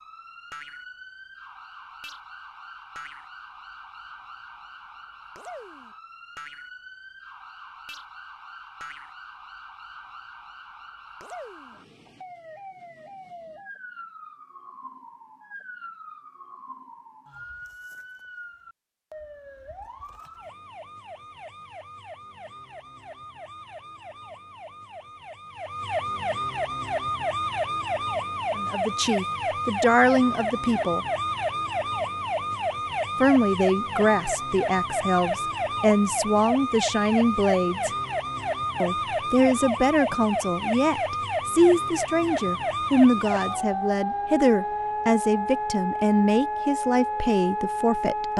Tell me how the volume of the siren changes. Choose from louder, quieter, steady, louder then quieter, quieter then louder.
louder.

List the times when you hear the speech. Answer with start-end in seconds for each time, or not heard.
28.6-31.0, 33.2-37.9, 38.8-48.3.